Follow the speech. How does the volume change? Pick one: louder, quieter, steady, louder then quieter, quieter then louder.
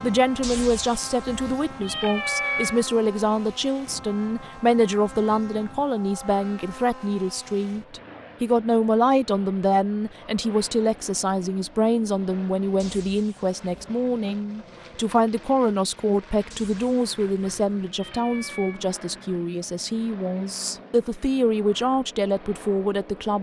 steady.